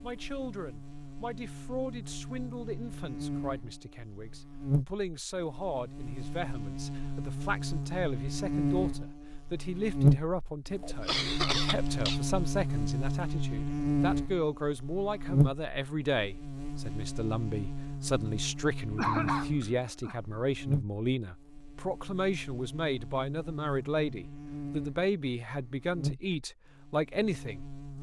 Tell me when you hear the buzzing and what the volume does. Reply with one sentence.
The buzzing can be heard from 0.0 to 27.9 s, getting louder then quieter.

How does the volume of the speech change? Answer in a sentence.
The loudness of the speech goes up.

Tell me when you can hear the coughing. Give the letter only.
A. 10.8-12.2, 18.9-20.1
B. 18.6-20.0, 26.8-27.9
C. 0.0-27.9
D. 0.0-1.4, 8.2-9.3
A.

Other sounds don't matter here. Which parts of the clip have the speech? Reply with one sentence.
You can hear the speech from 0.0 to 27.9 s.